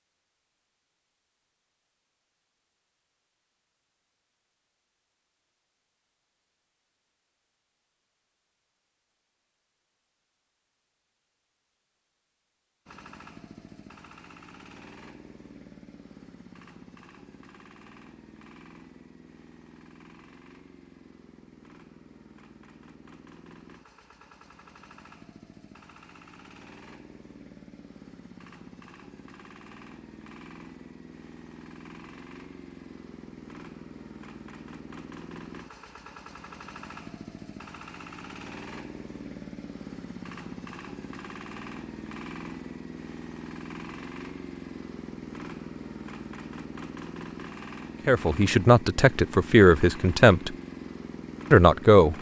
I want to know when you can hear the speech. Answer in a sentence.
You can hear the speech from 48.0 to 50.5 s and from 51.5 to 52.1 s.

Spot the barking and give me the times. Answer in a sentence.
You can't hear the barking here.